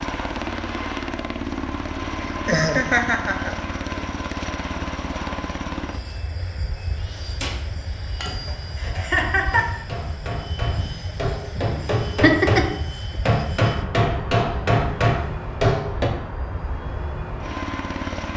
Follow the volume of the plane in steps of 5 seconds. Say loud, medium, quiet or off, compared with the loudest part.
loud, medium, medium, loud.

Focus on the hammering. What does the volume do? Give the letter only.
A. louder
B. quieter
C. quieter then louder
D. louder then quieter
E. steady
A.